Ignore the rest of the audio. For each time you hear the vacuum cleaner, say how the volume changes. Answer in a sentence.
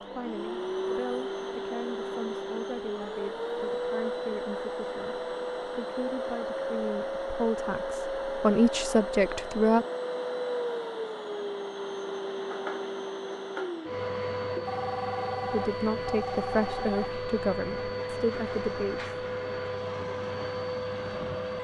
You can hear the vacuum cleaner from 0.0 to 21.6 s, at a steady volume.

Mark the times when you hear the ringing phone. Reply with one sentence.
The ringing phone can be heard from 14.7 to 17.1 s.